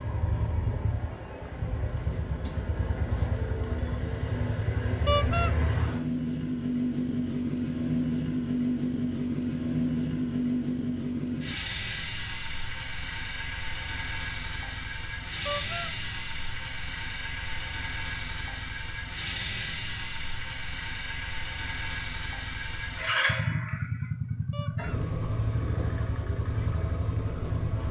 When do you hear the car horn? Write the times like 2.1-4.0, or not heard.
5.0-5.5, 15.4-15.9, 24.5-25.0.